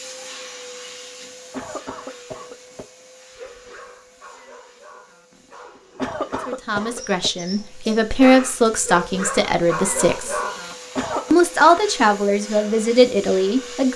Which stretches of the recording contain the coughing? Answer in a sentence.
You can hear the coughing from 1.5 to 2.9 s, from 6.0 to 7.3 s and from 10.9 to 11.3 s.